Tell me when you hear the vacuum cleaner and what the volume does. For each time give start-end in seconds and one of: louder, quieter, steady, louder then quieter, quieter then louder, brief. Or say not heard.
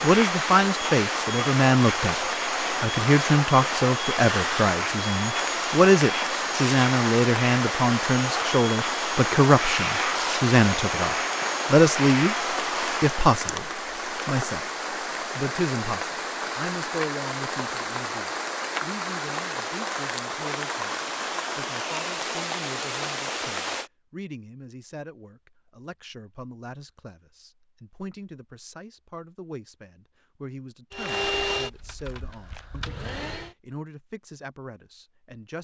0.0-13.2 steady
30.9-33.5 brief.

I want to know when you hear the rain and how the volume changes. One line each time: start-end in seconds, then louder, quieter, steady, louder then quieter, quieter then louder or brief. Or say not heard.
0.0-23.9 steady.